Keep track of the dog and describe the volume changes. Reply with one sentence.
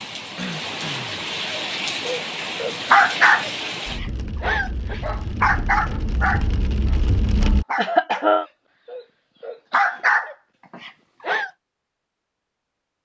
The loudness of the dog goes down, then up.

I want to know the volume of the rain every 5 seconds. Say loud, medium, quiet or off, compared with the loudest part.
loud, loud, off.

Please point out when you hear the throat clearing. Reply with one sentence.
You can hear the throat clearing from 0.3 to 1.1 s and from 7.8 to 8.4 s.